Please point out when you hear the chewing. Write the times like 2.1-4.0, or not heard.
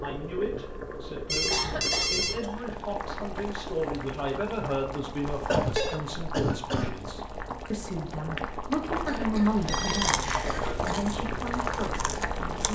9.8-12.6.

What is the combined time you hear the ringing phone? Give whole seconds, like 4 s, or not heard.
3 s.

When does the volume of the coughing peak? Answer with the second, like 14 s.
6 s.